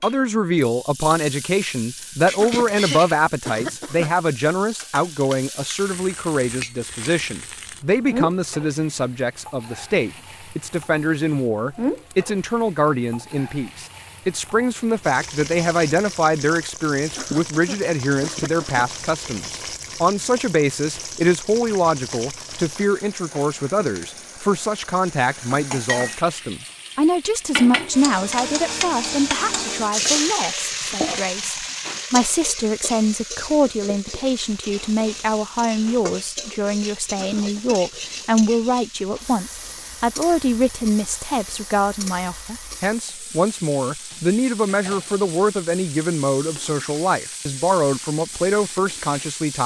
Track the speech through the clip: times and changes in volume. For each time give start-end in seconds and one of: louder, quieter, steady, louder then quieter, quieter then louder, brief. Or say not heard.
0.0-49.6 steady.